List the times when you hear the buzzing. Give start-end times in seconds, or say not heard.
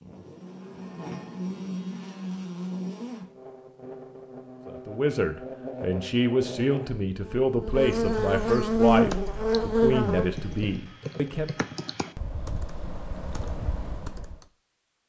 0.0-10.8.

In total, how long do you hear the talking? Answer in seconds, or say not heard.
7 s.